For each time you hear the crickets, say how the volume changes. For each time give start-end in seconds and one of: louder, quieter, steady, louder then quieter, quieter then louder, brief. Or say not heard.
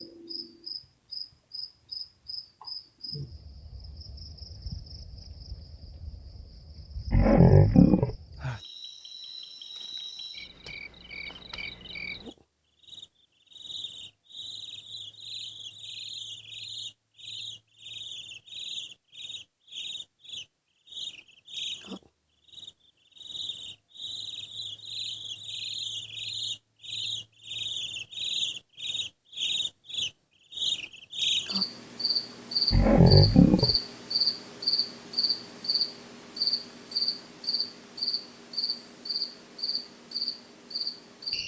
0.0-41.4 louder.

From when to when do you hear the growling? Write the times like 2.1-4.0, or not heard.
7.1-8.2, 32.7-33.8.